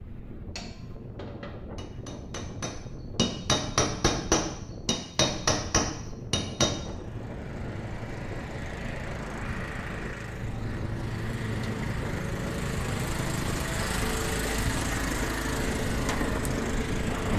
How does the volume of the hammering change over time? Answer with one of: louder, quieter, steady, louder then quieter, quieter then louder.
louder.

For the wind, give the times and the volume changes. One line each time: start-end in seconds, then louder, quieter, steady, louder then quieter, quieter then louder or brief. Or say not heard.
0.0-17.3 louder.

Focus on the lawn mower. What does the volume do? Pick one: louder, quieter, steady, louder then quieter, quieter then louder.
louder.